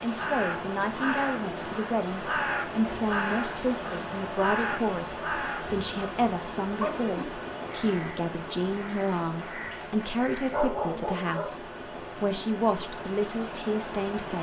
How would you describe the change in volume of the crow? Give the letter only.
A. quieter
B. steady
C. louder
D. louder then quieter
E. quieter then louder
A.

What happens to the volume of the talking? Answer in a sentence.
The volume of the talking stays about the same.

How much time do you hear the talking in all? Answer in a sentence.
The talking can be heard for 14 seconds in total.